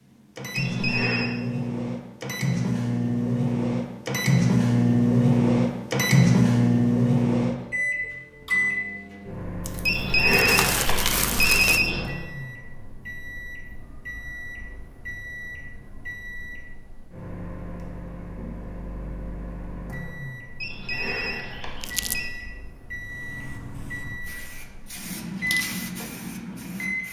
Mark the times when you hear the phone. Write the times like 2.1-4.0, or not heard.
0.6-1.4, 9.8-12.1, 20.6-22.3.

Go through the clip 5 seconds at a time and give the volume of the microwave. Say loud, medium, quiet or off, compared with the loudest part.
loud, loud, quiet, quiet, quiet, medium.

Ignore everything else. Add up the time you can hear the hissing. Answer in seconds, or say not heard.
4 s.